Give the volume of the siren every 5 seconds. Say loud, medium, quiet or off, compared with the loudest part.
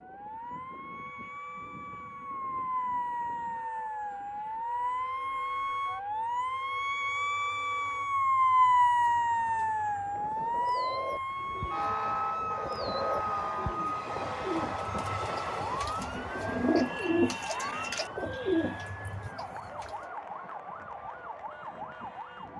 medium, loud, medium, quiet, quiet.